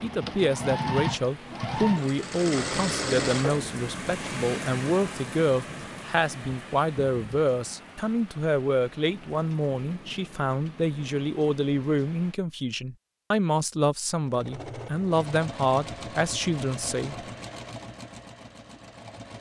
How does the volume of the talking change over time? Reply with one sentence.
The loudness of the talking stays about the same.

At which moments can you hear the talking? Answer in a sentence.
The talking can be heard from 0.0 to 17.1 s.